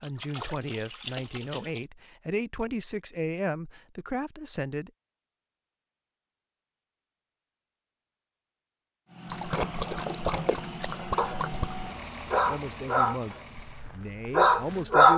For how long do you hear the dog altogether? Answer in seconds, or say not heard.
4 s.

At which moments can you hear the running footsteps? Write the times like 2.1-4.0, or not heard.
not heard.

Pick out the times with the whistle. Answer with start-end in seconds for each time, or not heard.
not heard.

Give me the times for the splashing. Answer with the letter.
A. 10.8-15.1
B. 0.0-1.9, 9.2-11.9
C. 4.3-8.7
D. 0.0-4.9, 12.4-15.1
B.